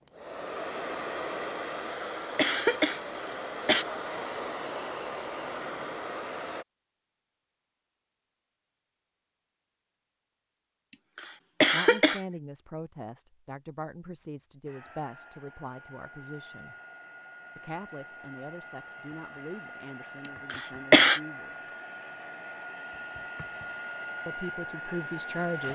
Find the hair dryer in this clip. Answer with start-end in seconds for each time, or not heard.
0.1-6.7, 14.7-25.6.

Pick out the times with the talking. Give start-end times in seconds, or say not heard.
11.7-16.8, 17.6-21.6, 24.2-25.6.